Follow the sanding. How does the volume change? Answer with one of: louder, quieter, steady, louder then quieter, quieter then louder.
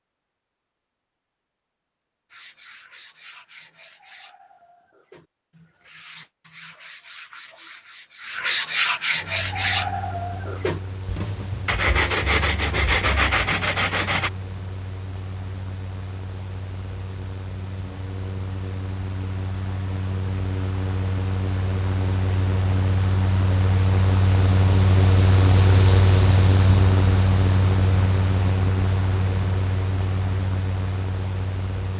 louder.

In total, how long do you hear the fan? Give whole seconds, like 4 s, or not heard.
23 s.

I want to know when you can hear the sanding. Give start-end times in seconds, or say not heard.
2.3-14.3.